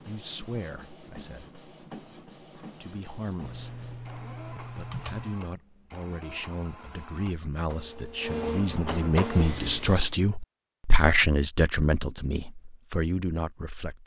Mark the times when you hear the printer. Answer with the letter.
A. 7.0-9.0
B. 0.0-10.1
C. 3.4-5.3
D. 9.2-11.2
B.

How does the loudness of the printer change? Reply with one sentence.
The volume of the printer goes up.